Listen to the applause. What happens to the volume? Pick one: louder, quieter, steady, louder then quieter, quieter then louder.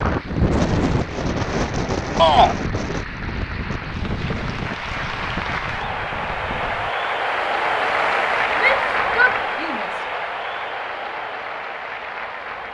louder then quieter.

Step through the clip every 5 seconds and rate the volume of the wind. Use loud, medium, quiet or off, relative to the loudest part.
loud, medium, off.